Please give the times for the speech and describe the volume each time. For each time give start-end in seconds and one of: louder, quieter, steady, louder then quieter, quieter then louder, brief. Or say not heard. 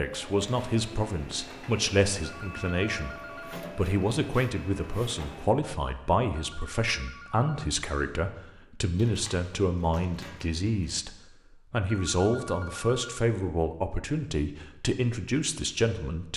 0.0-16.3 steady.